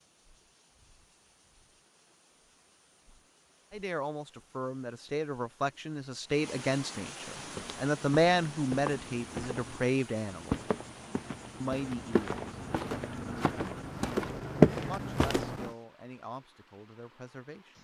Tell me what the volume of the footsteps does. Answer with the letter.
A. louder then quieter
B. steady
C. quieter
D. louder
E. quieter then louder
D.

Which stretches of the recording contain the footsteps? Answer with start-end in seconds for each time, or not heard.
7.3-15.7.